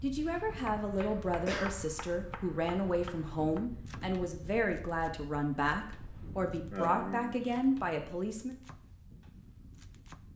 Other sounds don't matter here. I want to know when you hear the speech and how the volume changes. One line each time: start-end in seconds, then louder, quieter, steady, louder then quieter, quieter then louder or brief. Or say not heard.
0.0-8.6 steady.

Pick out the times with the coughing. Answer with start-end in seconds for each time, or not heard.
0.2-1.8, 6.7-7.5.